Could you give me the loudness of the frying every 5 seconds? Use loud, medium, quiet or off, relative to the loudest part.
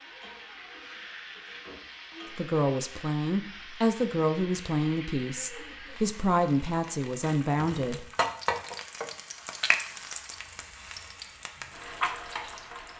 medium, loud, loud.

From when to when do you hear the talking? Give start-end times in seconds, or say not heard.
2.3-8.1.